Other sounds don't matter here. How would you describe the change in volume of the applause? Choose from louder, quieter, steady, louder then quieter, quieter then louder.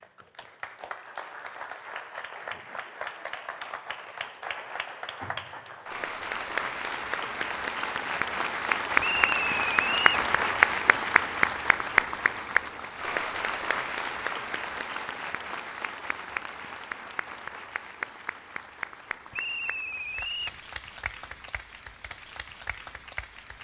louder then quieter.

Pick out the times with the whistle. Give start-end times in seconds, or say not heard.
9.0-10.2, 19.3-20.6.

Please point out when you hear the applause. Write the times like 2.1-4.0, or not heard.
0.0-23.5.